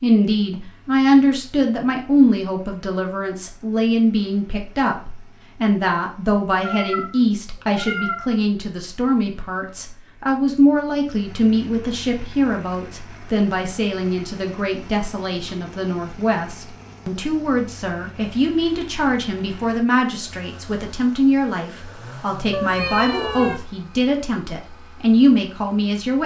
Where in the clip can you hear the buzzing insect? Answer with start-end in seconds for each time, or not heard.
not heard.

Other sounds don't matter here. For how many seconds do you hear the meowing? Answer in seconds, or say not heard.
3 s.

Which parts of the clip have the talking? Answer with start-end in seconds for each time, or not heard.
0.0-26.2.